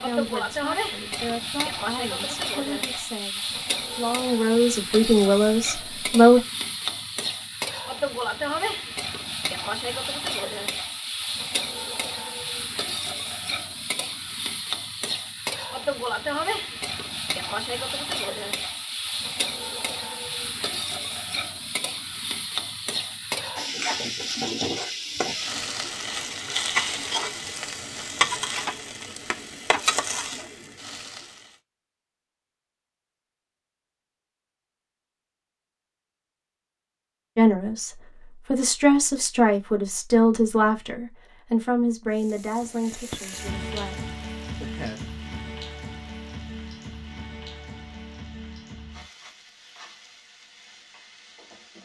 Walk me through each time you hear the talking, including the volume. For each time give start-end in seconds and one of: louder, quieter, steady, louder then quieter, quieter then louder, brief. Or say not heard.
0.0-6.4 louder
37.4-45.0 quieter.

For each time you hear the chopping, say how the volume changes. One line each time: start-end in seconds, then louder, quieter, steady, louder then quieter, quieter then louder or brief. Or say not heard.
not heard.